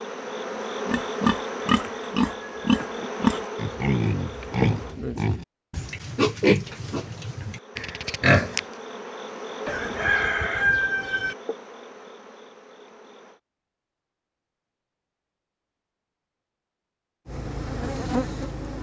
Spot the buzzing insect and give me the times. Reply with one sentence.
You can hear the buzzing insect from 0.0 to 5.0 s, from 6.8 to 13.4 s and from 17.2 to 18.7 s.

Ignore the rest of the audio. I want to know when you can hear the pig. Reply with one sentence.
You can hear the pig from 0.8 to 8.6 s.